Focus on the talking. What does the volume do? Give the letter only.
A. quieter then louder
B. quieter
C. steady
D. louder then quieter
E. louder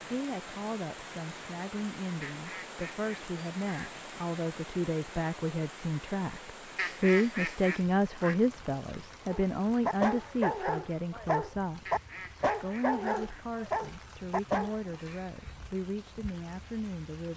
D.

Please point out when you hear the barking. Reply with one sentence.
The barking can be heard from 9.3 to 14.8 s.